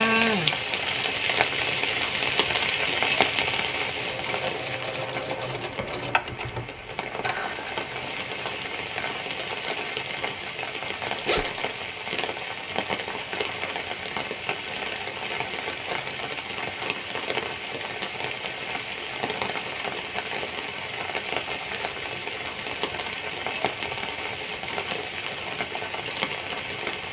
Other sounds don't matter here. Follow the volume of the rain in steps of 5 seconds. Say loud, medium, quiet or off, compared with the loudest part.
loud, medium, medium, medium, medium, medium.